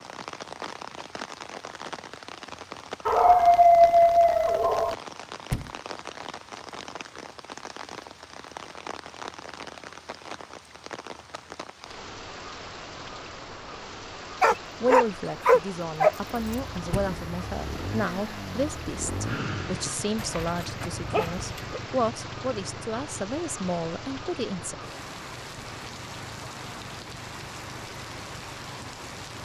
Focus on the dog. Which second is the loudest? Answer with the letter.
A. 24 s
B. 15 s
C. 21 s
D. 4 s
D.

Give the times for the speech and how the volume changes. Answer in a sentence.
The speech can be heard from 14.5 to 24.8 s, at a steady volume.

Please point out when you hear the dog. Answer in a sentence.
You can hear the dog from 3.0 to 5.0 s, from 14.4 to 16.6 s and from 20.1 to 21.8 s.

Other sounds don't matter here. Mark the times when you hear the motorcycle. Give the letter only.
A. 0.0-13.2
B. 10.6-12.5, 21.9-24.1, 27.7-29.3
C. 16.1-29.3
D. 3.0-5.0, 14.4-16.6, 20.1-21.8
C.